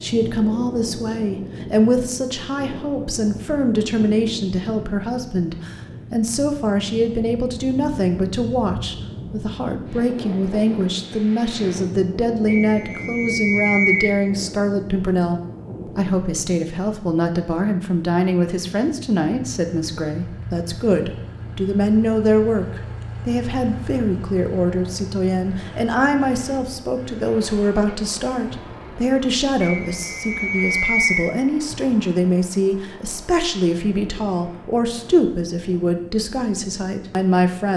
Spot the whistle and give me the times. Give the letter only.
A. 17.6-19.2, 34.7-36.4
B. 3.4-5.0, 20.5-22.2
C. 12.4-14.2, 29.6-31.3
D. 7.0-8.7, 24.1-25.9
C.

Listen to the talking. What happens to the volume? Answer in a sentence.
The volume of the talking stays about the same.